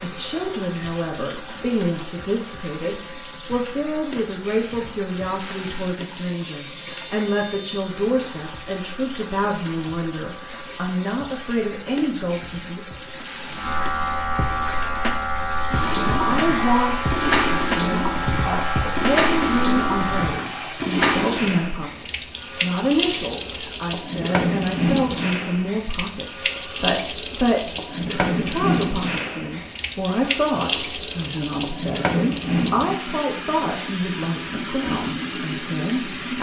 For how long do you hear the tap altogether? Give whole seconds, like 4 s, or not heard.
36 s.